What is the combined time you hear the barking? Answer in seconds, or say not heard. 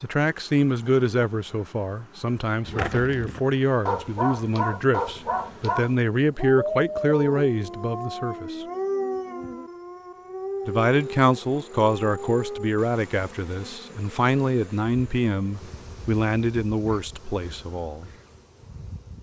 10 s.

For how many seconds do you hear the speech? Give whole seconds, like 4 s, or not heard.
16 s.